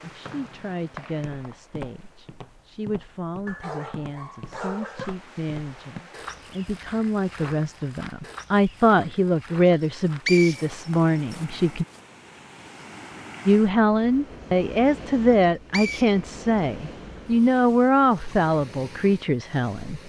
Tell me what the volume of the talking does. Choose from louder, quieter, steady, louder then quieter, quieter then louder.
louder.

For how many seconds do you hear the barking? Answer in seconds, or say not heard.
2 s.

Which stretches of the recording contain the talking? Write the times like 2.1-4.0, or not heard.
0.0-11.8, 13.4-20.0.